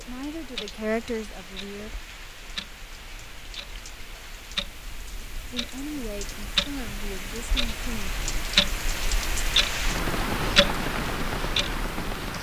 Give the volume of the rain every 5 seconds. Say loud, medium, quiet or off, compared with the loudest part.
quiet, medium, loud.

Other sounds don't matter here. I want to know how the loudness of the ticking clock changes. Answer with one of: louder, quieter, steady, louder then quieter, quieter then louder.
louder.